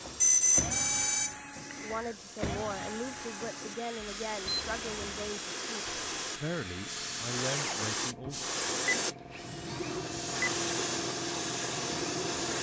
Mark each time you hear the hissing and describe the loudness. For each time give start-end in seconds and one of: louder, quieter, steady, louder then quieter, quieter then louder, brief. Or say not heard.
0.0-12.5 louder.